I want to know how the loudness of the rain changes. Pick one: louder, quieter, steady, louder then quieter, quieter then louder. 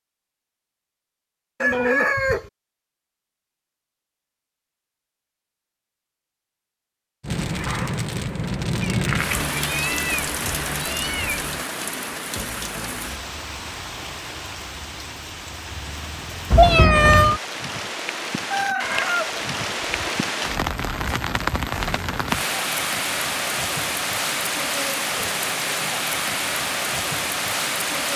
quieter then louder.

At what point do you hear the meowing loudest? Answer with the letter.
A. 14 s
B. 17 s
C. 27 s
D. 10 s
B.